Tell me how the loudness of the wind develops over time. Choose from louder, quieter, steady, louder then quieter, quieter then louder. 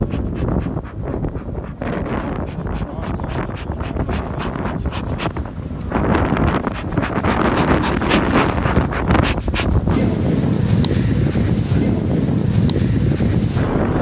louder.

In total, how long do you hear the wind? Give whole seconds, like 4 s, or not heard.
14 s.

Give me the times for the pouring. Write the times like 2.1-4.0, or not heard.
not heard.